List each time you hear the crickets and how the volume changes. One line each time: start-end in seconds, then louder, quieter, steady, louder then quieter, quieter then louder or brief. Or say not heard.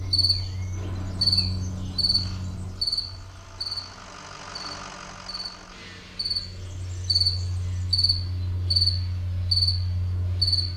0.0-10.7 quieter then louder.